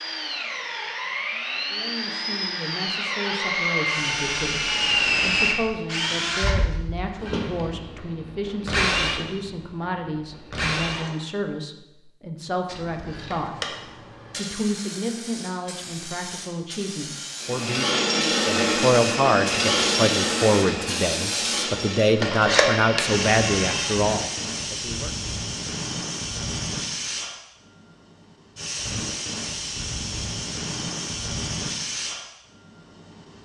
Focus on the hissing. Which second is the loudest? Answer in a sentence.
The volume of the hissing peaks at 23 seconds.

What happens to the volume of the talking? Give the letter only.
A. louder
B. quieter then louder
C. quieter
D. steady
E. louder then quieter
A.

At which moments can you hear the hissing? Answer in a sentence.
The hissing can be heard from 12.7 to 33.3 s.